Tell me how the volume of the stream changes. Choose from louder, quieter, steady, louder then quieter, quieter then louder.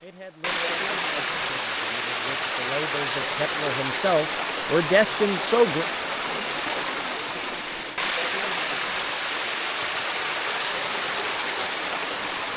steady.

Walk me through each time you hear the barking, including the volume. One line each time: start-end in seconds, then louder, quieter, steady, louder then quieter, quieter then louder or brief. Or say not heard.
not heard.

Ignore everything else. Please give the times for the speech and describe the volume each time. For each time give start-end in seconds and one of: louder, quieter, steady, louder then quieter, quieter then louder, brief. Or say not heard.
0.0-5.8 louder.